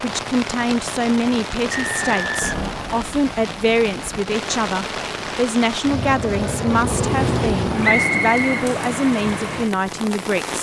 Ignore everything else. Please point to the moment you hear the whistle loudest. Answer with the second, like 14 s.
8 s.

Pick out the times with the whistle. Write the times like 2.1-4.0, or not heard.
1.7-3.0, 7.8-8.5.